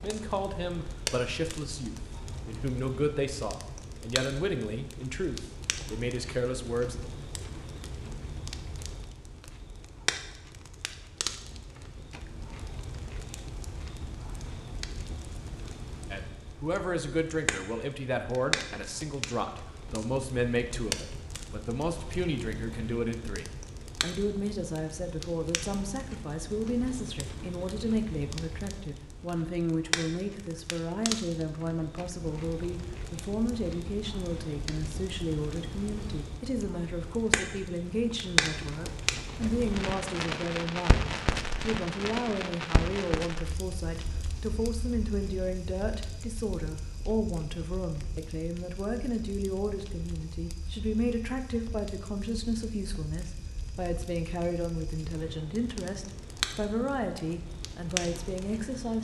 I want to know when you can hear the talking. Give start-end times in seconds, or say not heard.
0.0-7.0, 16.1-58.9.